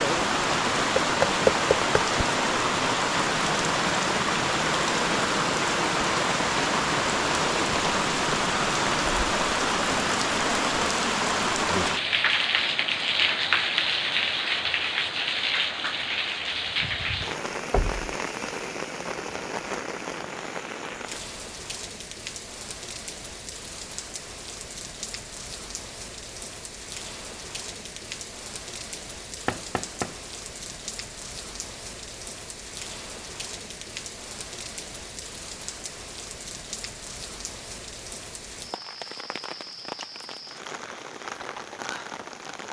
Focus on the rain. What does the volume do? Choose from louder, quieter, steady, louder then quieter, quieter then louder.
quieter.